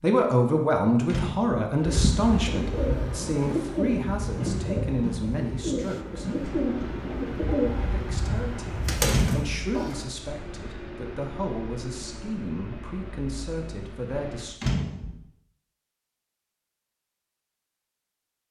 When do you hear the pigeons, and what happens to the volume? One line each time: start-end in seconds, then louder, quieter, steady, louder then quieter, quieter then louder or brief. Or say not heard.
1.8-10.1 steady.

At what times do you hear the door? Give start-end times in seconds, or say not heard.
1.1-1.6, 9.1-9.5, 14.6-15.2.